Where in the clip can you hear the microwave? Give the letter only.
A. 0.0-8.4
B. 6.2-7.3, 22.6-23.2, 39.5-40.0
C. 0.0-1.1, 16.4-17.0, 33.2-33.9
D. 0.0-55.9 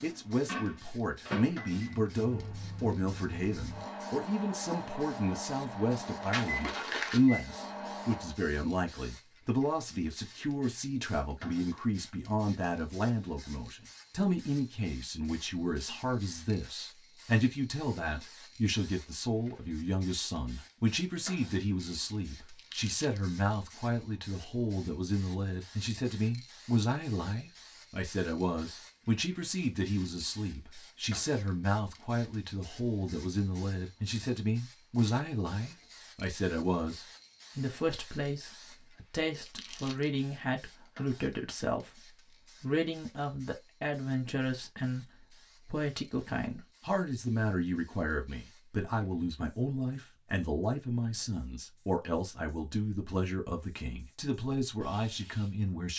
A.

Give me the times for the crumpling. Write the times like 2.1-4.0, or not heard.
6.2-7.3, 22.6-23.2, 39.5-40.0.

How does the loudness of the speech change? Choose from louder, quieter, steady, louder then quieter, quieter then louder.
steady.